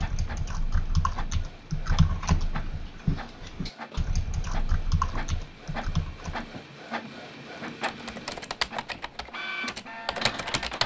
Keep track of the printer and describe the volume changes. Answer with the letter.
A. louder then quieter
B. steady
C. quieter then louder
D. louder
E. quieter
D.